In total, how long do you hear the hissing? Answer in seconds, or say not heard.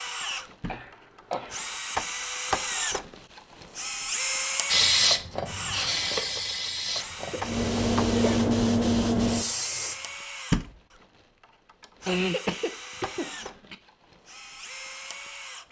5 s.